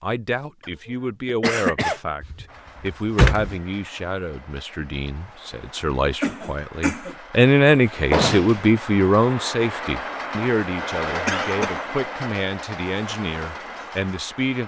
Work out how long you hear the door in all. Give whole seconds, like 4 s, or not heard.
2 s.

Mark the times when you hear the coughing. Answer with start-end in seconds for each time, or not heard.
0.6-2.0, 6.2-7.2, 11.2-11.8.